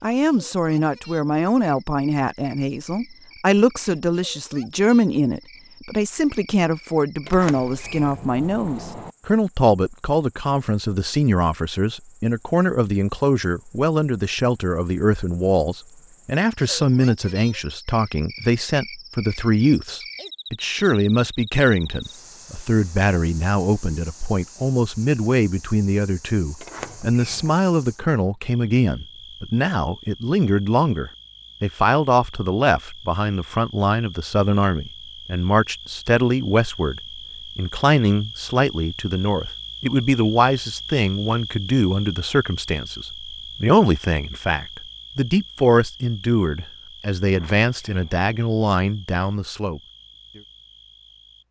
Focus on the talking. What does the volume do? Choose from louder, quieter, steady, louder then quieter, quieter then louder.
steady.